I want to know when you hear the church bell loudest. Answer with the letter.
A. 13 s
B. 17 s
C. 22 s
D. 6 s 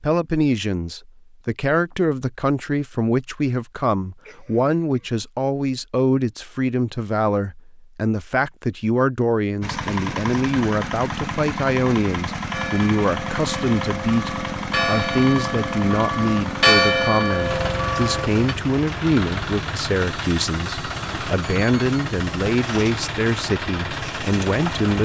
B.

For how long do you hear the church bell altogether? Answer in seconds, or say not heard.
6 s.